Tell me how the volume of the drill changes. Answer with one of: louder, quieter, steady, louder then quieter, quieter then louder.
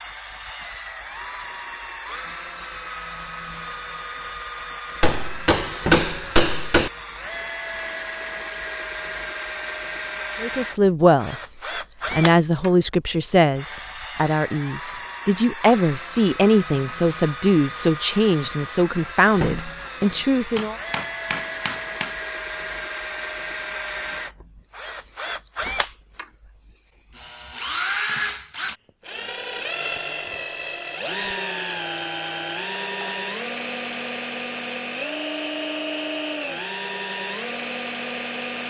steady.